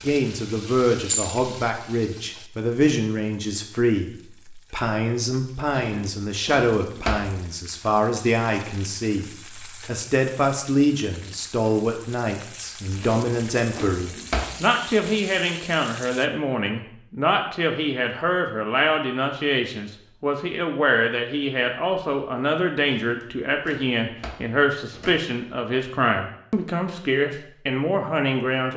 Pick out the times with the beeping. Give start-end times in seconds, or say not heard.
not heard.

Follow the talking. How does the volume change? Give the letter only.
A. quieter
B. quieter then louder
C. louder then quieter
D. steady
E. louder
D.